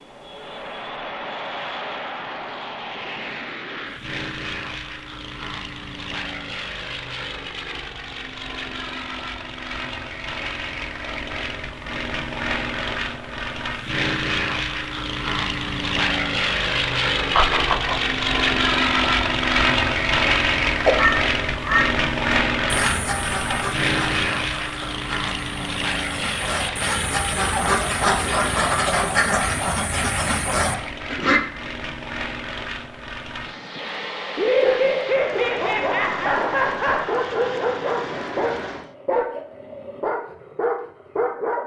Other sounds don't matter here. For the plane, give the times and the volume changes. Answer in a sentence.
The plane can be heard from 0.0 to 39.0 s, getting louder then quieter.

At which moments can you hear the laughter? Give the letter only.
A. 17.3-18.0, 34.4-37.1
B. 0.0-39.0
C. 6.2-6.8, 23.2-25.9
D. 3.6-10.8
A.